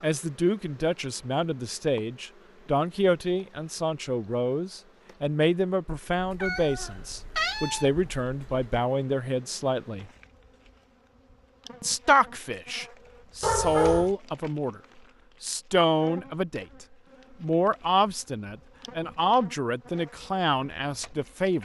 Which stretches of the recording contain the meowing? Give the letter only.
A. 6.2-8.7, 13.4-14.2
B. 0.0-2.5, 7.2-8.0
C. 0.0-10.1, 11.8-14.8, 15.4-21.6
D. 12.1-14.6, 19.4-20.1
A.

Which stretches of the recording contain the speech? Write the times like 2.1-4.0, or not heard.
0.0-10.1, 11.8-14.8, 15.4-21.6.